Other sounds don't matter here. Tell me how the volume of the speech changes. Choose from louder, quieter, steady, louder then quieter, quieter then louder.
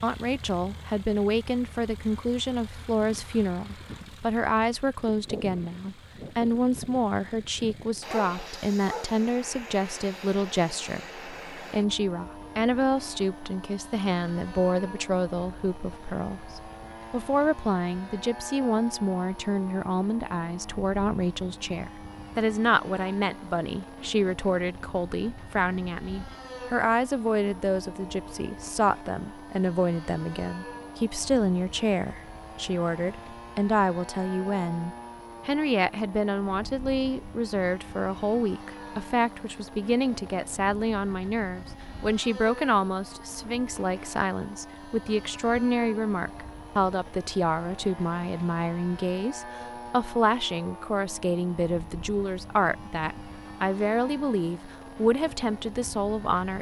steady.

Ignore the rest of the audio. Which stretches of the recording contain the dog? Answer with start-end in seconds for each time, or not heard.
8.1-9.2.